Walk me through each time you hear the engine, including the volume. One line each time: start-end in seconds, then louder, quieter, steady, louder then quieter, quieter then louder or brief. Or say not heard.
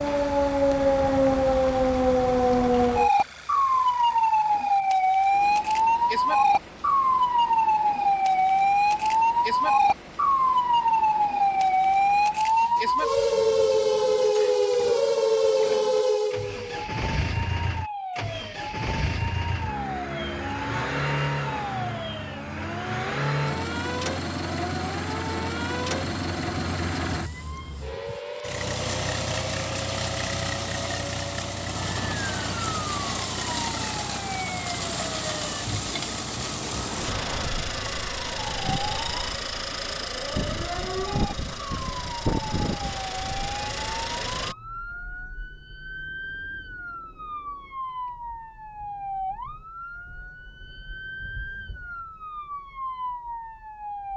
0.0-44.5 louder.